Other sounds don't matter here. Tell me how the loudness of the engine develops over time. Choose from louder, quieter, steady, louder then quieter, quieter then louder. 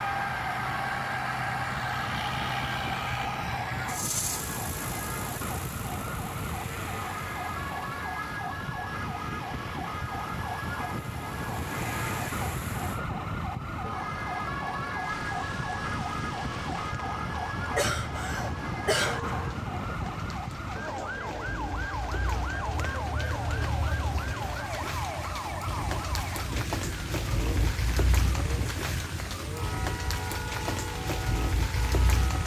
quieter then louder.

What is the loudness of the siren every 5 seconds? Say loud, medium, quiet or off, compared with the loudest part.
loud, loud, loud, loud, loud, medium, medium.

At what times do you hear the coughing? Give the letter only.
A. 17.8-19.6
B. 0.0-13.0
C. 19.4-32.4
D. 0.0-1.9
A.